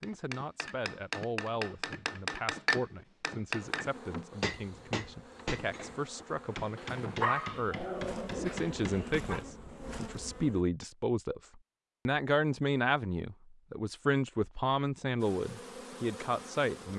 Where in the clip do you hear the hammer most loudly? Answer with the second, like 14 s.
3 s.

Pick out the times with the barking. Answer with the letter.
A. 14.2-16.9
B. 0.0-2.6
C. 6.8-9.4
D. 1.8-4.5
C.